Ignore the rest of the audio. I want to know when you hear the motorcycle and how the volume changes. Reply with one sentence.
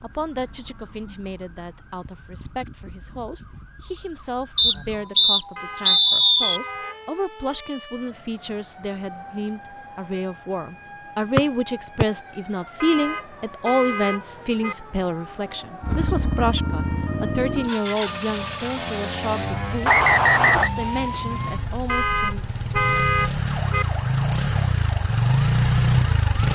You can hear the motorcycle from 15.8 to 26.5 s, getting quieter then louder.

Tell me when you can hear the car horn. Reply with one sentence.
You can hear the car horn from 5.5 to 7.0 s, from 12.8 to 14.8 s and from 21.9 to 23.9 s.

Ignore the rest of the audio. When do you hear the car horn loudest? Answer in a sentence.
The volume of the car horn peaks at 23 seconds.